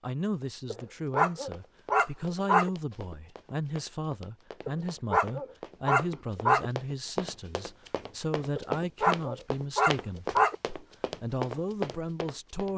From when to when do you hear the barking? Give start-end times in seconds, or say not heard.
0.7-2.7, 4.7-6.7, 8.6-10.6.